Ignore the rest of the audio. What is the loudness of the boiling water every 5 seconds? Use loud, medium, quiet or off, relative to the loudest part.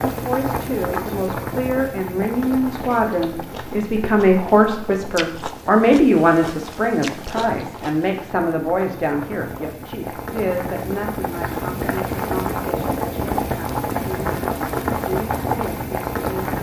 medium, quiet, loud, loud.